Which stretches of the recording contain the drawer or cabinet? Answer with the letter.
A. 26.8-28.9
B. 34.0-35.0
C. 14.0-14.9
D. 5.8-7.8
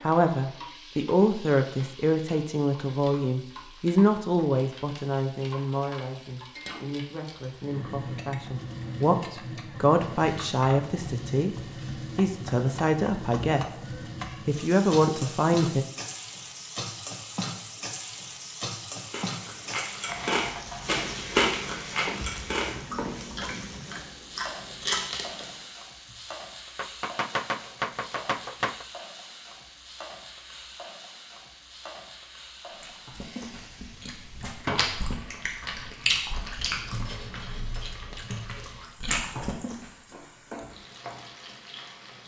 B.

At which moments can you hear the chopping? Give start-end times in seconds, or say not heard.
26.8-28.9.